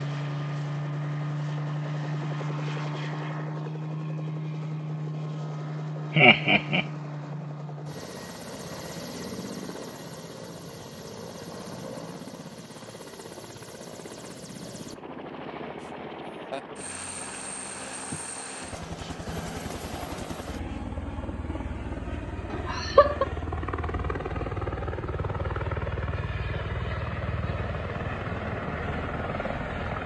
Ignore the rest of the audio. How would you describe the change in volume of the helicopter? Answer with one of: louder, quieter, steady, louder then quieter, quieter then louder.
quieter then louder.